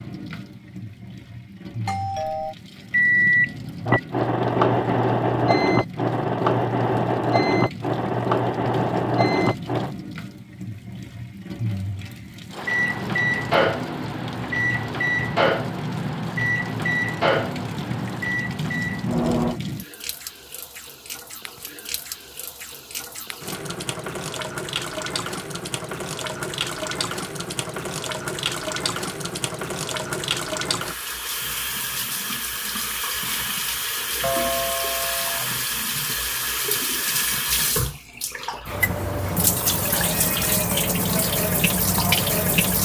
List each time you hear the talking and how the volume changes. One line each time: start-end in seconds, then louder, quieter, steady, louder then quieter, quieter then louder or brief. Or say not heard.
not heard.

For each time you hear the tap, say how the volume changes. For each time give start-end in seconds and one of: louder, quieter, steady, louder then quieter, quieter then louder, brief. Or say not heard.
0.0-42.7 louder.